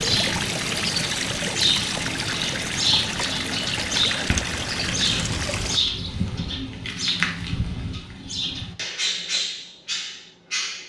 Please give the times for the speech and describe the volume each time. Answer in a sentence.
The speech can't be heard in this clip.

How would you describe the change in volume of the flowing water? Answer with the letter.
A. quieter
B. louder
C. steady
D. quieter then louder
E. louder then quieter
C.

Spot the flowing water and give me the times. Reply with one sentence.
The flowing water can be heard from 0.0 to 5.8 s.